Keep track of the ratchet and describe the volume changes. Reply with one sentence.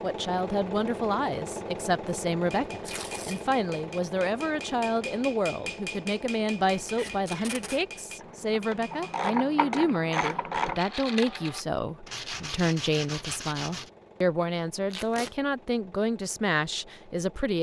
The volume of the ratchet goes up.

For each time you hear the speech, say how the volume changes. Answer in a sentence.
You can hear the speech from 0.0 to 17.5 s, at a steady volume.